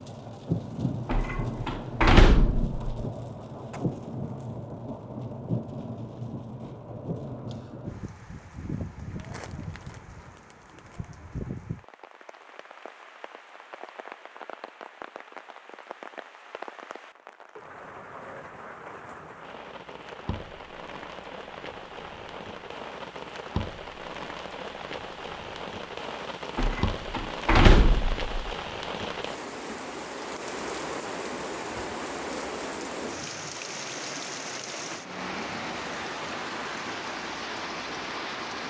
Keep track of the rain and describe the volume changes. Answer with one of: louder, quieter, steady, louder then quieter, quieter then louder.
quieter then louder.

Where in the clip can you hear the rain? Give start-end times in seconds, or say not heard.
0.0-38.6.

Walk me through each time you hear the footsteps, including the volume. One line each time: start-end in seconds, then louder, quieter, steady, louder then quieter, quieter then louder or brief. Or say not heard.
not heard.